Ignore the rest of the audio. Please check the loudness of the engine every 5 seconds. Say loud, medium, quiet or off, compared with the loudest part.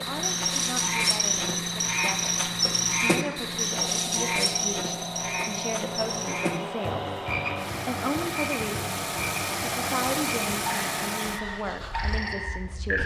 medium, loud, loud.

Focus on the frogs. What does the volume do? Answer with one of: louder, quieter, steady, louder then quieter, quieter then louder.
quieter.